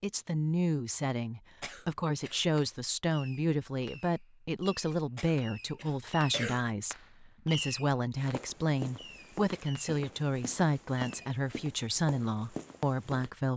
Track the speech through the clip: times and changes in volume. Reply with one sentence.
The speech can be heard from 0.0 to 13.5 s, at a steady volume.